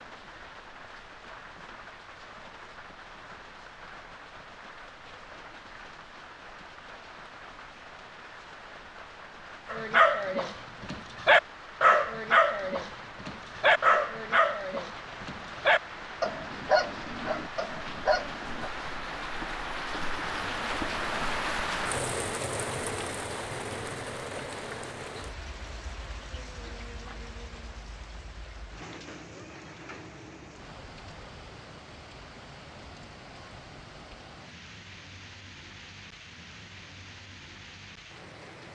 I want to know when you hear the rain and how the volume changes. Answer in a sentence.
You can hear the rain from 0.0 to 38.7 s, getting louder then quieter.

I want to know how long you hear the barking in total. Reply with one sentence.
The barking can be heard for 9 seconds in total.